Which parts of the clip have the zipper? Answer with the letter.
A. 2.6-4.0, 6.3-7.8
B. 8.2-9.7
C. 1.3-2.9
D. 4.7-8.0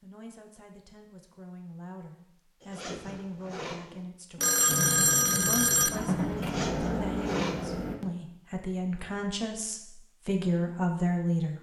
A.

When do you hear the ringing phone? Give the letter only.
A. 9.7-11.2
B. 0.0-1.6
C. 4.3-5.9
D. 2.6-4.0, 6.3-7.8
C.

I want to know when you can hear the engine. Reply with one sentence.
You can hear the engine from 4.7 to 8.0 s.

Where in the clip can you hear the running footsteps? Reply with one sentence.
The running footsteps can't be heard in this clip.